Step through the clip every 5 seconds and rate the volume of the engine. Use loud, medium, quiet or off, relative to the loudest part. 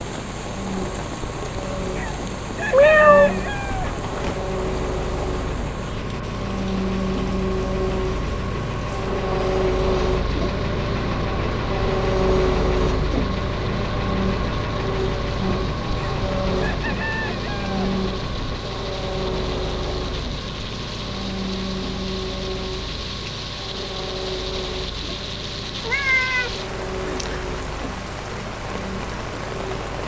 medium, loud, loud, loud, medium, medium.